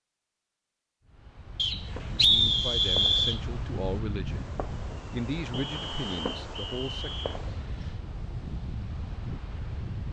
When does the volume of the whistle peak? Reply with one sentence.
The loudest moment of the whistle is at 2 seconds.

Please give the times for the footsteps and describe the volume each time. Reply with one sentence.
The footsteps can't be heard in this clip.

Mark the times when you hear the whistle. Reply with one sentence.
The whistle can be heard from 1.6 to 3.4 s and from 5.5 to 7.4 s.